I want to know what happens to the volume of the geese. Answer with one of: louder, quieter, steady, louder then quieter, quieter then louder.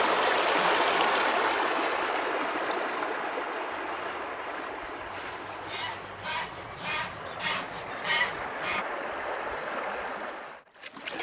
louder.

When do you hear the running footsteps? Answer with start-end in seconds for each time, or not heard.
not heard.